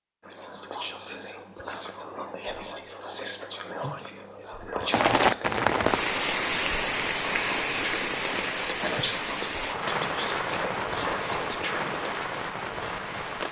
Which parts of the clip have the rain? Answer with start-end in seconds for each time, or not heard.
4.9-13.4.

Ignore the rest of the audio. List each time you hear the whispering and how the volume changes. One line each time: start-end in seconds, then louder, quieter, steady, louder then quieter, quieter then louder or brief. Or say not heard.
0.2-12.2 steady.